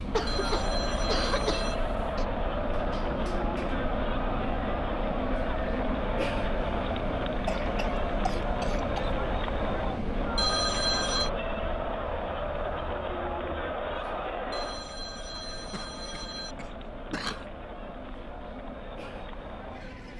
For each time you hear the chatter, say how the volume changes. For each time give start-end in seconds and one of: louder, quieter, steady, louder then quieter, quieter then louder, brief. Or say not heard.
0.0-20.1 quieter.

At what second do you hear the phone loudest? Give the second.
11 s.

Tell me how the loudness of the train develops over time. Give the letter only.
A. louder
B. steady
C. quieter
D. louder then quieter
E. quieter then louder
C.